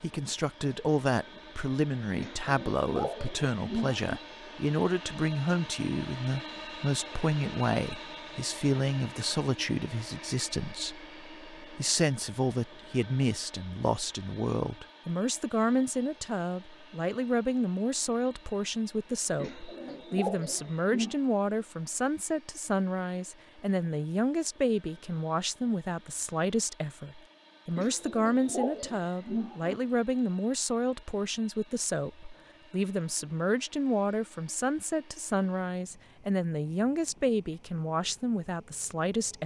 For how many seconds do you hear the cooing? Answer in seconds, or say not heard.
6 s.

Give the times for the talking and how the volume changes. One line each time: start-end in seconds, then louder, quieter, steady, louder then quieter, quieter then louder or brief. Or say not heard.
0.0-39.4 steady.